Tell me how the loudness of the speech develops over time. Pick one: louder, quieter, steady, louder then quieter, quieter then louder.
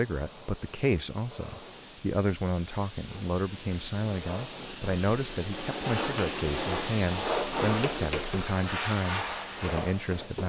steady.